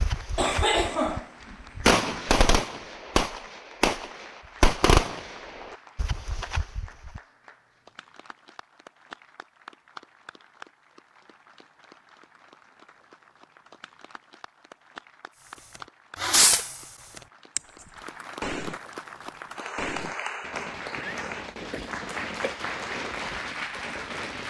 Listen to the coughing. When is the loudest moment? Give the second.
1 s.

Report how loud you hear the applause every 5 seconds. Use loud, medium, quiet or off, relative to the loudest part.
quiet, quiet, quiet, medium, loud.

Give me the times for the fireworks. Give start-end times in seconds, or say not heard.
0.0-7.2, 16.1-18.9, 19.8-24.4.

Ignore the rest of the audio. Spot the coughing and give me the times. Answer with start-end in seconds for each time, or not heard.
0.3-2.2, 20.9-22.6.